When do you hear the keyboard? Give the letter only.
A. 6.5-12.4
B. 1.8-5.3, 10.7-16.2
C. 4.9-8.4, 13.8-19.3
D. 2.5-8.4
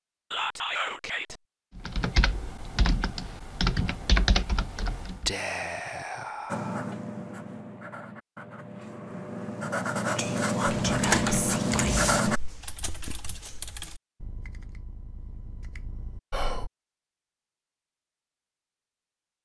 B.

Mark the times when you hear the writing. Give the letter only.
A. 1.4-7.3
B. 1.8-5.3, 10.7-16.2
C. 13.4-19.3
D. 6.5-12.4
D.